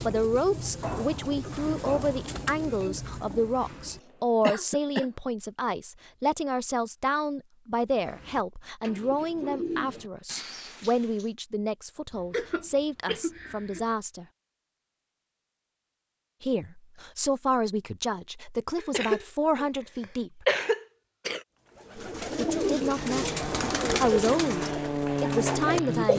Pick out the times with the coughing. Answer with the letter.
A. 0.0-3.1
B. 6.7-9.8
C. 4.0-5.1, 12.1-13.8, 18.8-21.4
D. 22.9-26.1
C.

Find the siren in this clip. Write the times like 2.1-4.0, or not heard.
not heard.